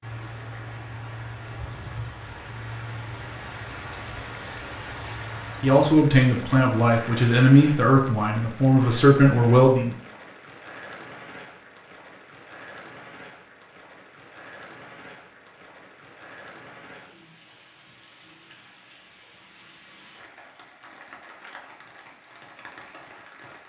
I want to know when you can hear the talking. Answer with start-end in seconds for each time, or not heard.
5.6-9.9.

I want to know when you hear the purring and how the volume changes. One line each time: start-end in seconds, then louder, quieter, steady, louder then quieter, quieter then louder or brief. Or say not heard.
not heard.